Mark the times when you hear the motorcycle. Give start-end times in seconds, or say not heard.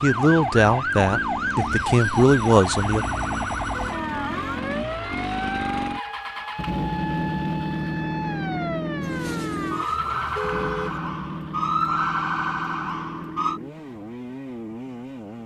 0.0-15.4.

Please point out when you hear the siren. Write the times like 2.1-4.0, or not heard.
0.0-13.6.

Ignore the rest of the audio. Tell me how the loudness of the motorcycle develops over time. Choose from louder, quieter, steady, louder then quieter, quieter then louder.
louder then quieter.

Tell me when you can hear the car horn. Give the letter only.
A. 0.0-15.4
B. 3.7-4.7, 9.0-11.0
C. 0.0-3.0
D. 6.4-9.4
B.